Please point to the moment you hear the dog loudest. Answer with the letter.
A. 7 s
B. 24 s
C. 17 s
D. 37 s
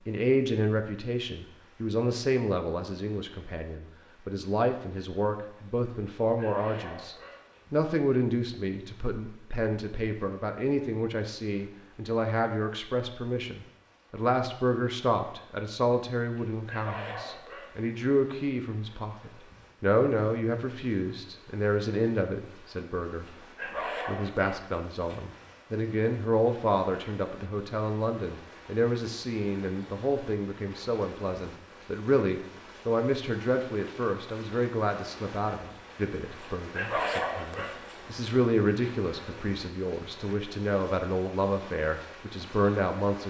D.